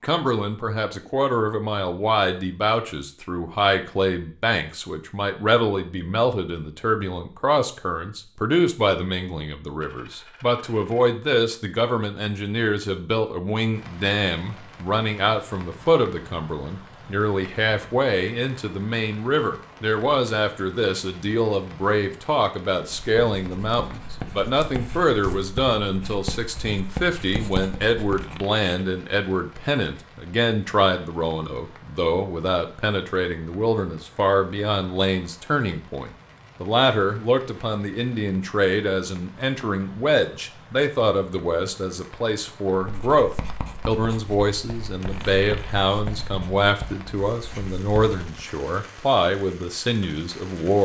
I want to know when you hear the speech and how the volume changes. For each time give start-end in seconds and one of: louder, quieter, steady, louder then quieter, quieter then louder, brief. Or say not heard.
0.0-50.8 steady.